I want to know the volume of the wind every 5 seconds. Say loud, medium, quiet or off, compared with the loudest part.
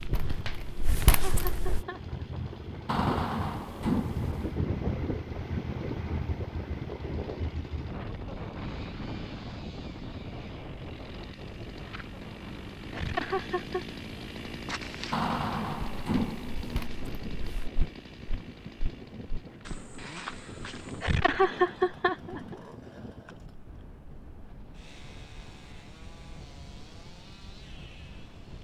loud, loud, medium, medium, medium, quiet.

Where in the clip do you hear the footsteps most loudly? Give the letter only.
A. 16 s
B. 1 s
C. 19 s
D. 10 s
B.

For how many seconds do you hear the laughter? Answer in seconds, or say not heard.
4 s.